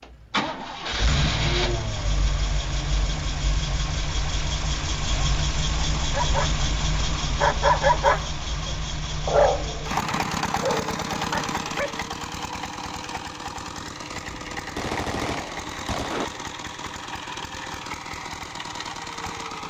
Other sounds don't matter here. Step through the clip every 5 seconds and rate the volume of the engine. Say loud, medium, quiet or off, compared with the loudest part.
loud, loud, loud, medium.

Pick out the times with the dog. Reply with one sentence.
The dog can be heard from 6.1 to 12.6 s.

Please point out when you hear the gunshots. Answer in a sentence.
You can hear the gunshots from 14.3 to 16.2 s.